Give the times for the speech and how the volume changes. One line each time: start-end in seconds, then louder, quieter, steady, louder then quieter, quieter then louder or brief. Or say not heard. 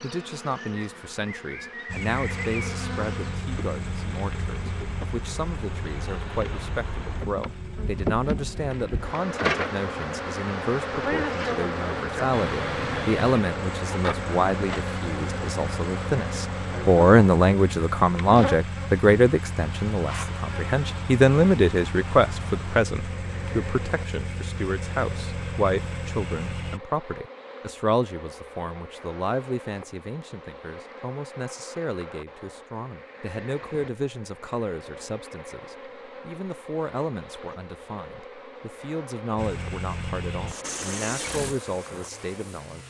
0.0-42.8 louder then quieter.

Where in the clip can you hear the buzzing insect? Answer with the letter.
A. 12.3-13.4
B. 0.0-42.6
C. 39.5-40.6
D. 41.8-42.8
B.